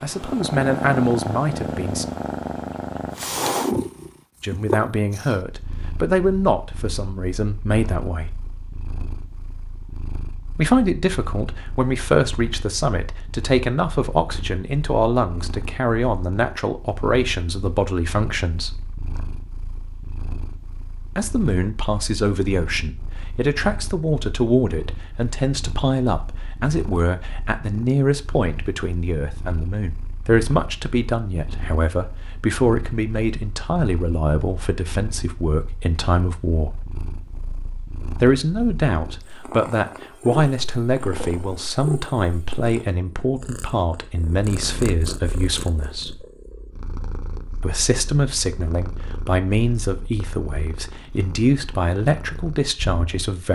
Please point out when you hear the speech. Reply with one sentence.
The speech can be heard from 0.0 to 2.0 s, from 4.4 to 8.3 s, from 10.6 to 18.7 s, from 21.1 to 36.8 s, from 38.2 to 46.2 s and from 47.6 to 53.4 s.